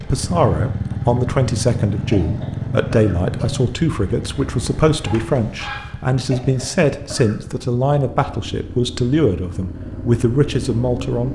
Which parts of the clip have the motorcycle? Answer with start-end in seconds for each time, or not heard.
0.0-11.3.